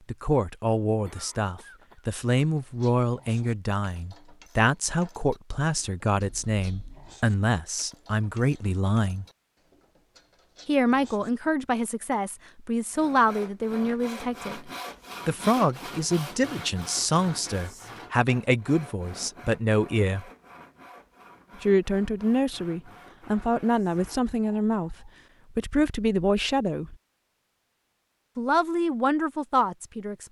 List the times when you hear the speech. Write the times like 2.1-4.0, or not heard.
0.1-9.2, 10.7-20.2, 21.6-26.9, 28.4-30.2.